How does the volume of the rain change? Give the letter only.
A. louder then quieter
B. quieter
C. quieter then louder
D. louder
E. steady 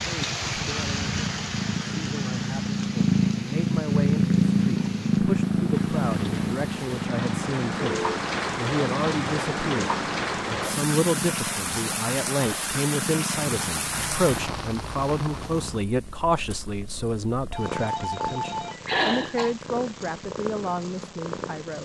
C.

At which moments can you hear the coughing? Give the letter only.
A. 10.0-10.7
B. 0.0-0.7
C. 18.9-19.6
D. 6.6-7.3
C.